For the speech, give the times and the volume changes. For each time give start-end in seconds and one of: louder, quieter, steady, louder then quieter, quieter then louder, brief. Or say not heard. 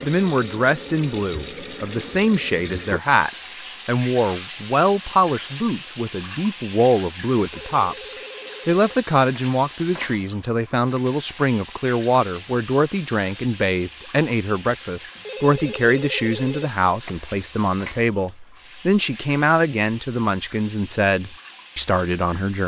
0.0-22.6 steady.